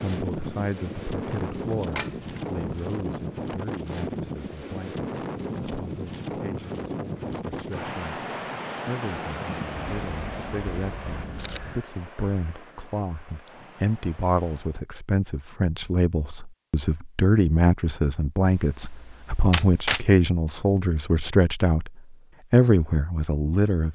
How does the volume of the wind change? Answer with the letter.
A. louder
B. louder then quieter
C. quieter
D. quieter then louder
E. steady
C.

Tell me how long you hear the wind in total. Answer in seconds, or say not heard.
15 s.